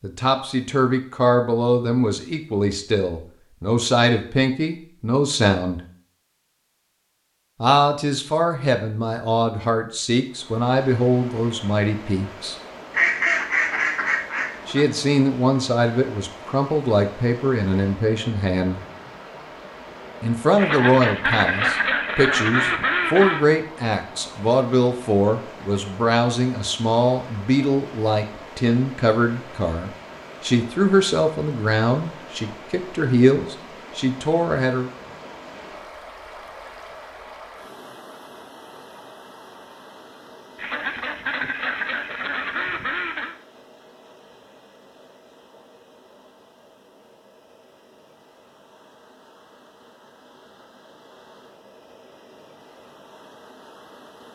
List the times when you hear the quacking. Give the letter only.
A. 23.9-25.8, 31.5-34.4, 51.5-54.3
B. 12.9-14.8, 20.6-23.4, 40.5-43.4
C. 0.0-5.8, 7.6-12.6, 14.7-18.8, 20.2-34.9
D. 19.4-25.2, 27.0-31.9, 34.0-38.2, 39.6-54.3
B.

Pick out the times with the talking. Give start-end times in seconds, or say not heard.
0.0-5.8, 7.6-12.6, 14.7-18.8, 20.2-34.9.